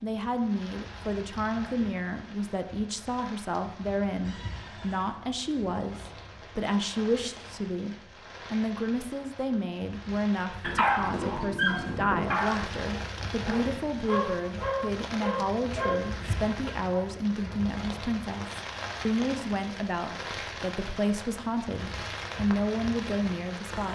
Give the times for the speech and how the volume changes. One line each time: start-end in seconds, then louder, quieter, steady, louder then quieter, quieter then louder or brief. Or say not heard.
0.0-23.9 steady.